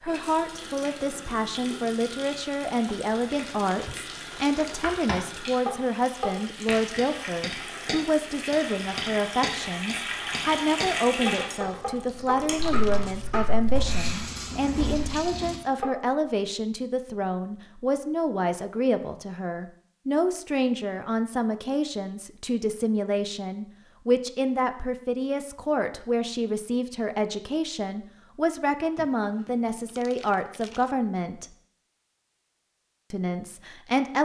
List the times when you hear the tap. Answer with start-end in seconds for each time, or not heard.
0.0-15.6.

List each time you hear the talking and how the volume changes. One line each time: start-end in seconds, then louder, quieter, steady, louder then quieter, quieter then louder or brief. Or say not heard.
0.0-31.4 steady
33.1-34.2 brief.